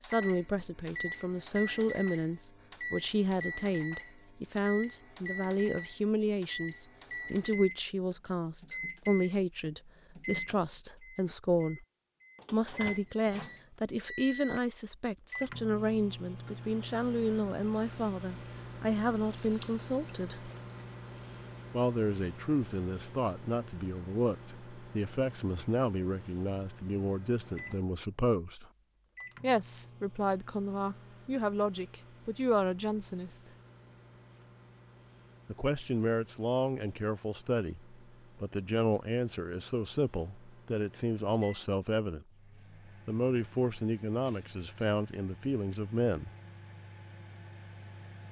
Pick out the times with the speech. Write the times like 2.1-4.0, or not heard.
0.0-11.8, 12.5-20.5, 21.7-28.6, 29.4-33.5, 35.5-42.2, 43.0-46.3.